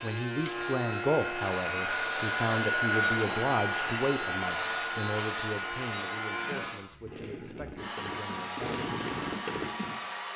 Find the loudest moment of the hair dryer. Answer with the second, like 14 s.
3 s.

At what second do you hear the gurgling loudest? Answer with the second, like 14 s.
9 s.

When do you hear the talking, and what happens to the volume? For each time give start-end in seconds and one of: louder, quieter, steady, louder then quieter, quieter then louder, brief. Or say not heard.
0.0-8.8 quieter.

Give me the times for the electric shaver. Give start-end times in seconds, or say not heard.
0.0-6.8.